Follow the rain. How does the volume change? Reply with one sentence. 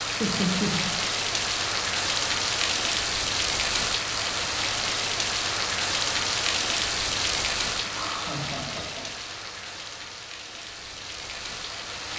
The loudness of the rain goes down.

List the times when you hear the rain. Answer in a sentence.
You can hear the rain from 0.0 to 12.1 s.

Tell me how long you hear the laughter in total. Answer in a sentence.
The laughter can be heard for 2 seconds in total.